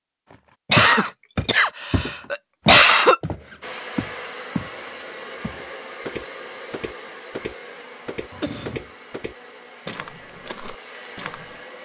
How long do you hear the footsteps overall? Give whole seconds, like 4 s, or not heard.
11 s.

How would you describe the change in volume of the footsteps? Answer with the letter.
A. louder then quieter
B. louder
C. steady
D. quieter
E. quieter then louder
D.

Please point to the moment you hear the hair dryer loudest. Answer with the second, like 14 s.
4 s.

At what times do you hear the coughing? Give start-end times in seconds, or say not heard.
0.7-3.2, 8.3-8.8.